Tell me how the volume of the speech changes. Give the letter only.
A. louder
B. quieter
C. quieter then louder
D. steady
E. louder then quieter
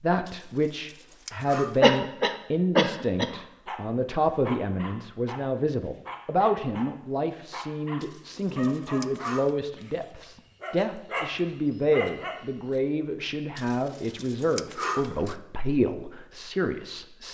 D.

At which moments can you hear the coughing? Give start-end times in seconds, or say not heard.
1.8-3.3.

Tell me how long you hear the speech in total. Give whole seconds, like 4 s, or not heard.
17 s.